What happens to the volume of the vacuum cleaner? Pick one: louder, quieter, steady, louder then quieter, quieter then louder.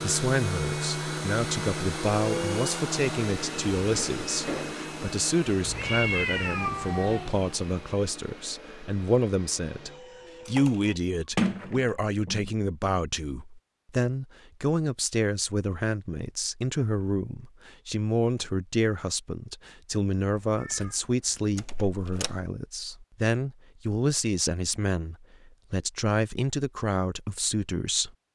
quieter.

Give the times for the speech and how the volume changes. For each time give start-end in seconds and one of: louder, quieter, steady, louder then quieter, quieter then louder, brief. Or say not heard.
0.0-28.1 steady.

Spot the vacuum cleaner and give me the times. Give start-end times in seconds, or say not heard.
0.0-10.9.